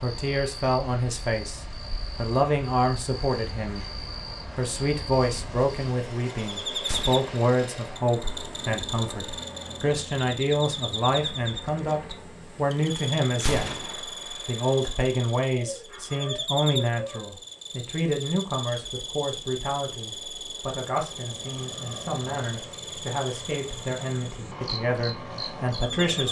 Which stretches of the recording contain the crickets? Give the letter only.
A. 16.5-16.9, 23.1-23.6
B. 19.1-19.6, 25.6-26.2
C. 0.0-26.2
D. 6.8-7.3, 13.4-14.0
C.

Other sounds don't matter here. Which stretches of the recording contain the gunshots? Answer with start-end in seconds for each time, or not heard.
6.8-7.3, 13.4-14.0.